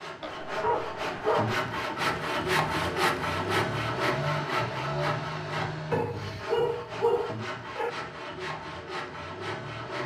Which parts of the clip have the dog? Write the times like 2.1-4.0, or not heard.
0.2-1.6, 5.9-7.9.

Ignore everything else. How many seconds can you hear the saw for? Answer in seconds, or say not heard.
10 s.